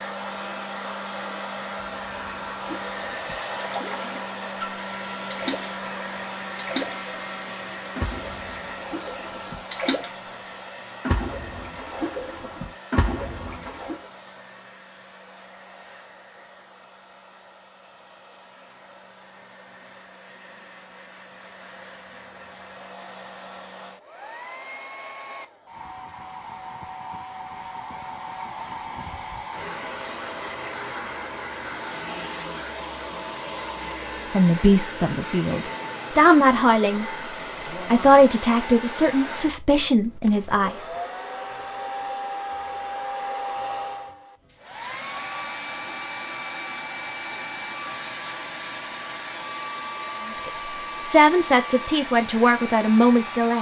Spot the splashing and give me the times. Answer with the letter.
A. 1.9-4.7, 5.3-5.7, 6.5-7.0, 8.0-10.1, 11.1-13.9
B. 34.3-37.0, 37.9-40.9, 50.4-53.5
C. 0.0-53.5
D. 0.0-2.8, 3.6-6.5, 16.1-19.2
A.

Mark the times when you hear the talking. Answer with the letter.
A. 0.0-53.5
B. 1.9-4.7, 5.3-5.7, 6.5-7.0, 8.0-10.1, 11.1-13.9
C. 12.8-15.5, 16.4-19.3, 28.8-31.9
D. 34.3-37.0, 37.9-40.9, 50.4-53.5
D.